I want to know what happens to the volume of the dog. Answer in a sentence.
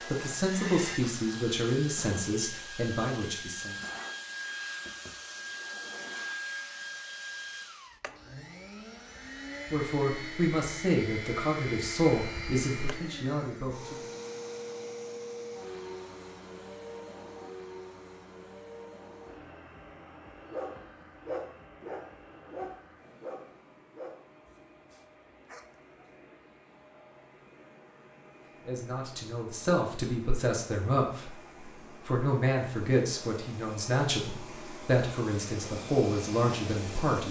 The volume of the dog goes down.